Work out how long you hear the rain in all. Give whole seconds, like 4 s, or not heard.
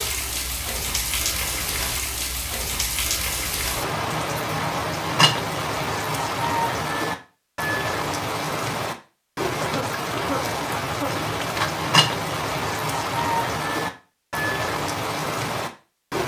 16 s.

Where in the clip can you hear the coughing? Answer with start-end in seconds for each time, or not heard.
9.6-11.7.